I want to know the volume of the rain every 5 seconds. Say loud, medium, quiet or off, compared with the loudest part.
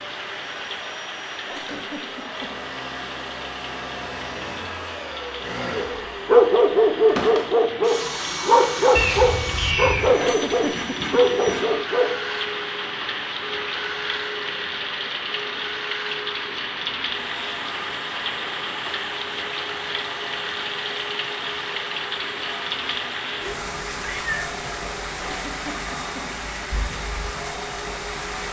medium, medium, loud, loud, loud, loud.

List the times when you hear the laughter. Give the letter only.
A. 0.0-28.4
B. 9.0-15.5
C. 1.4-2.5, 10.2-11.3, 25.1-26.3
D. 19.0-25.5
C.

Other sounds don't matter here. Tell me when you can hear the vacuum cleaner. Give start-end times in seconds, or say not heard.
0.0-28.4.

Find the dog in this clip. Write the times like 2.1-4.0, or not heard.
5.7-12.2.